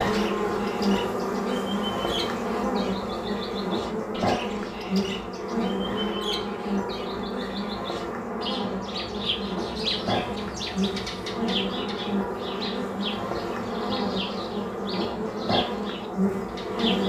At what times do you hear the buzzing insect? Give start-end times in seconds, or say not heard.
0.0-17.0.